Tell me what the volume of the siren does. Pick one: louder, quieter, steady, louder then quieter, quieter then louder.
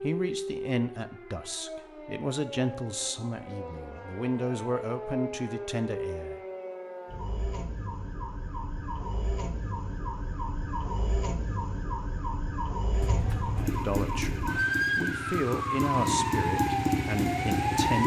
louder.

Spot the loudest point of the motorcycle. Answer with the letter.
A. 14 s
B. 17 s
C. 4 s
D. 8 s
B.